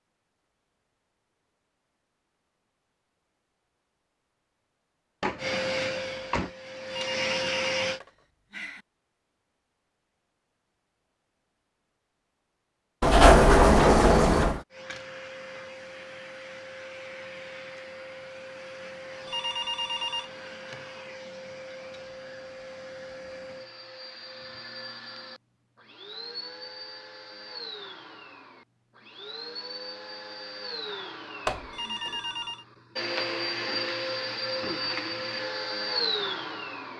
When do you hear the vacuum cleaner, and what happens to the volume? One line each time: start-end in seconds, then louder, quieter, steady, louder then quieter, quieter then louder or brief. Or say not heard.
5.3-8.0 brief
14.7-36.9 louder.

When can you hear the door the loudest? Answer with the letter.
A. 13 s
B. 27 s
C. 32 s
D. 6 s
A.